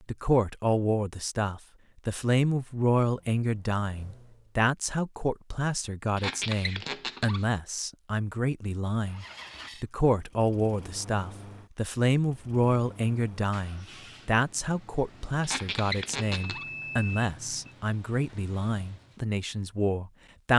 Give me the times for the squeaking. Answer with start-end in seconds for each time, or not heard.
6.2-7.5, 15.4-16.6.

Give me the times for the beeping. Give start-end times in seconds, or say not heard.
16.4-17.8.